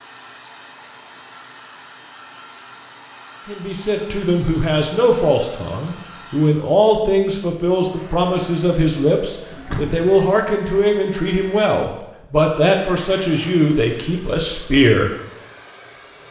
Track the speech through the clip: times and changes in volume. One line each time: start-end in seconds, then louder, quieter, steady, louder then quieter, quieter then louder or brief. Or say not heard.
3.5-15.1 steady.